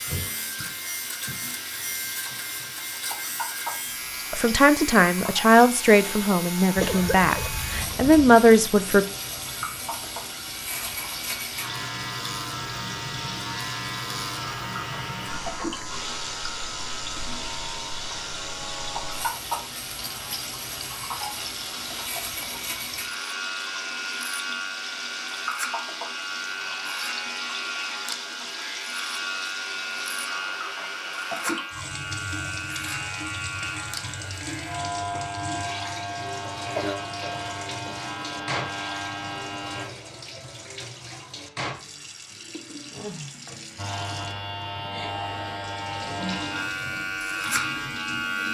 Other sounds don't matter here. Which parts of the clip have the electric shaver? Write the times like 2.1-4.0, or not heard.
0.0-39.9, 43.8-48.5.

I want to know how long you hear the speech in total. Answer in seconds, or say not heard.
5 s.